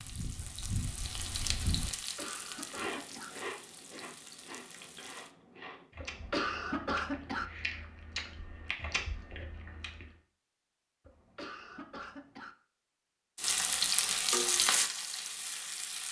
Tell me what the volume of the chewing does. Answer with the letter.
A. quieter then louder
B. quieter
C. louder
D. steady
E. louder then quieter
A.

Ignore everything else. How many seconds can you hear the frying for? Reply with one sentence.
The frying can be heard for 8 seconds in total.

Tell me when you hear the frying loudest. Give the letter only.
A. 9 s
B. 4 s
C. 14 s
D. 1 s
C.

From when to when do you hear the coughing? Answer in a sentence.
The coughing can be heard from 1.9 to 3.4 s, from 6.0 to 7.5 s and from 11.1 to 12.6 s.